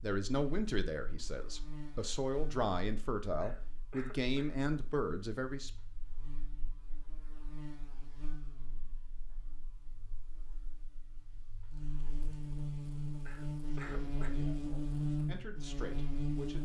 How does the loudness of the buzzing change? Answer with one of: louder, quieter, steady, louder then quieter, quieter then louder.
quieter then louder.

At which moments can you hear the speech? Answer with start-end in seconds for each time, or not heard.
0.0-5.7, 13.8-16.6.